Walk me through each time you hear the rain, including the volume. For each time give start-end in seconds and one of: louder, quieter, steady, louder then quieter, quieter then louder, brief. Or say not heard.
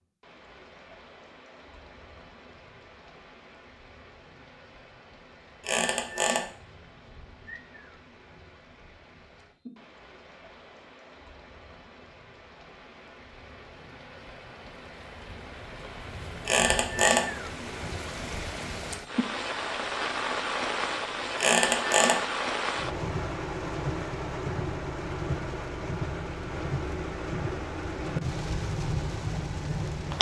0.0-30.1 louder.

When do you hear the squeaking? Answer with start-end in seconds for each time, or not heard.
5.6-6.5, 16.4-17.3, 21.4-22.2.